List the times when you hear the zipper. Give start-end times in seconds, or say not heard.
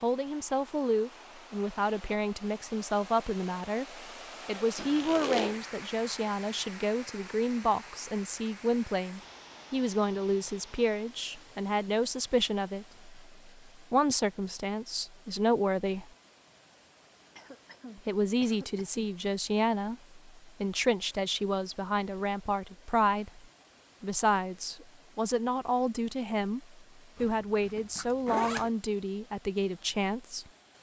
4.8-5.6, 27.1-28.7.